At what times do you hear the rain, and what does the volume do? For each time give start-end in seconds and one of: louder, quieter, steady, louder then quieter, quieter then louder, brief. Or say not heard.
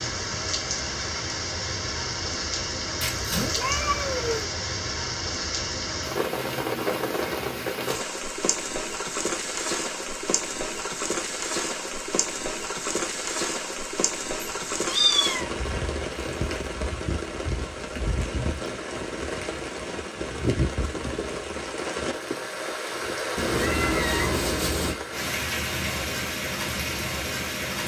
0.0-27.8 steady.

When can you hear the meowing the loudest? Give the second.
15 s.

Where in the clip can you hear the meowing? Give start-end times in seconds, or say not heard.
3.0-4.5, 14.4-15.4, 23.4-24.9.